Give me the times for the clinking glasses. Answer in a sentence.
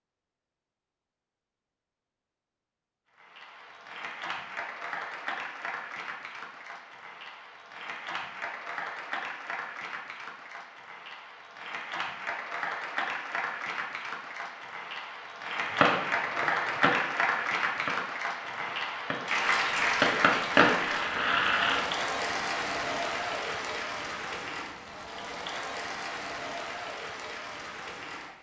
You can't hear the clinking glasses here.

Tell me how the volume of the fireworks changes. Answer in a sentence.
The volume of the fireworks goes down, then up.